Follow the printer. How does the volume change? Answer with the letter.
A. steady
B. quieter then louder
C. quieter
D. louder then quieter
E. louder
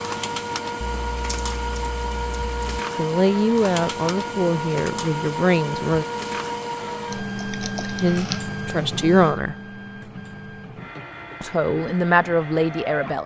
C.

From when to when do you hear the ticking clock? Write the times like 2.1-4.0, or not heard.
not heard.